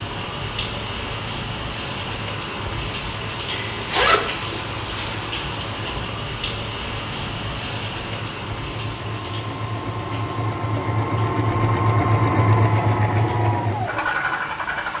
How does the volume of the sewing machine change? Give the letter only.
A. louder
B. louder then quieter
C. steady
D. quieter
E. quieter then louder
A.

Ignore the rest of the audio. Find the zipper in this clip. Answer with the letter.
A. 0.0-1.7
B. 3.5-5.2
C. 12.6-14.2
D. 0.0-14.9
B.